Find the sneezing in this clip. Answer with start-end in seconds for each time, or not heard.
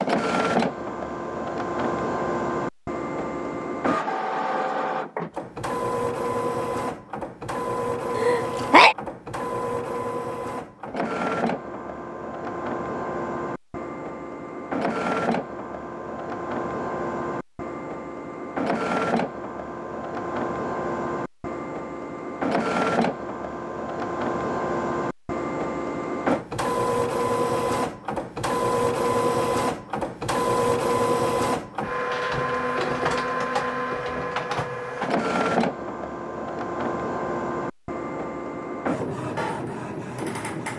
8.2-8.9.